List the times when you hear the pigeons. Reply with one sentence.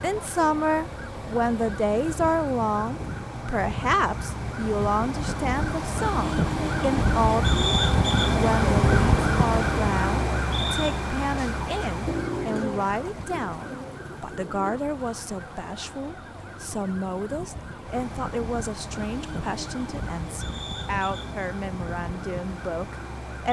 You can hear the pigeons from 12.1 to 14.8 s.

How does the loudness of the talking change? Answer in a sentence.
The volume of the talking goes down.